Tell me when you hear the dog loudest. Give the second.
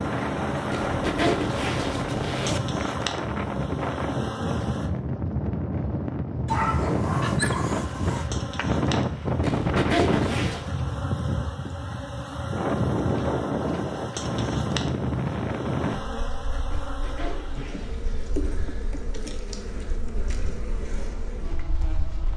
7 s.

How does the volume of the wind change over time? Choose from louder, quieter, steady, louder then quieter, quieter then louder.
quieter.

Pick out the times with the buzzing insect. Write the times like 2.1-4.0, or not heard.
0.0-4.9, 7.7-22.3.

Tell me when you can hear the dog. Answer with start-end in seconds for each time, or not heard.
6.5-8.3.